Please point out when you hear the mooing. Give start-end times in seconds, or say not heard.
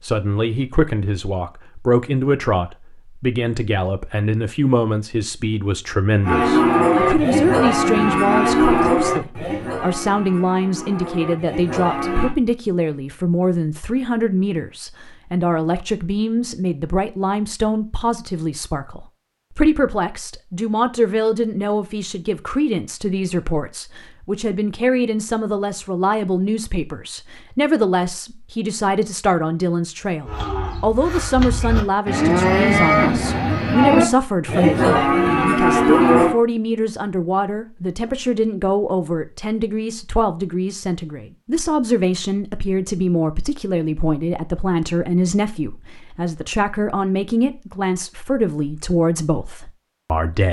6.2-12.3, 30.2-36.4.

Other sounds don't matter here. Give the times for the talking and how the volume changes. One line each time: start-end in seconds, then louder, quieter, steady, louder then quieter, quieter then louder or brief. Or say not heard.
0.0-50.4 steady.